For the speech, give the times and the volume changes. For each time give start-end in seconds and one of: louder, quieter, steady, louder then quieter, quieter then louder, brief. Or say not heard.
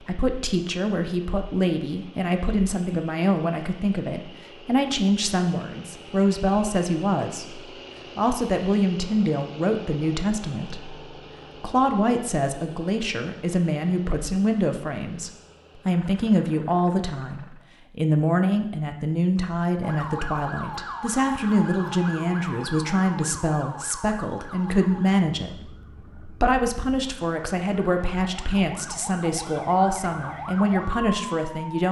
0.0-31.8 steady.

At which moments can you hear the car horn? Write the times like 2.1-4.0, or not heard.
not heard.